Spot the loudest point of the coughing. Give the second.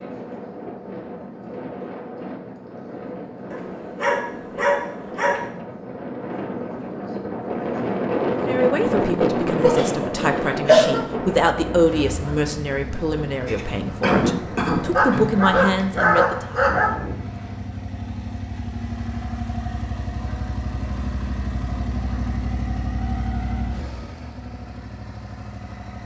11 s.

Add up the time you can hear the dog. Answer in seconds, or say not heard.
4 s.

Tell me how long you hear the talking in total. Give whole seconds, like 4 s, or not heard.
8 s.